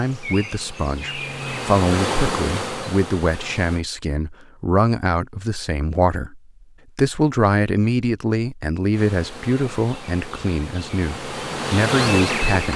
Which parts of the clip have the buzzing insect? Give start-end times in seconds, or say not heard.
0.0-3.9, 8.9-12.7.